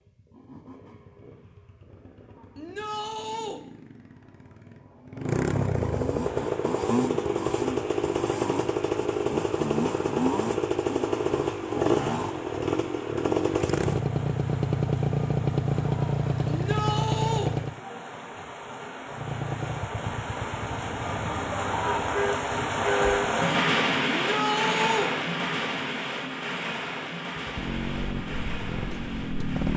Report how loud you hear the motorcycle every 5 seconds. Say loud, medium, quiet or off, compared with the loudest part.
quiet, loud, loud, loud, quiet, medium.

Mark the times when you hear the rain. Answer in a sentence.
The rain can be heard from 6.2 to 29.7 s.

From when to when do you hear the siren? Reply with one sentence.
You can't hear the siren here.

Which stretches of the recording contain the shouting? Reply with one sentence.
The shouting can be heard from 2.5 to 3.6 s, from 16.4 to 17.5 s and from 24.1 to 25.1 s.